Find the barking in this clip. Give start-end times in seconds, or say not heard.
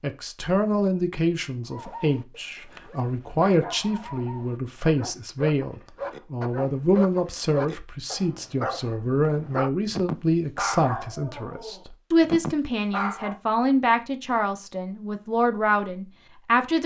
1.7-13.4.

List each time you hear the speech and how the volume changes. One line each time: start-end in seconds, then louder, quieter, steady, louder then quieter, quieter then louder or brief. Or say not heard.
0.0-16.8 steady.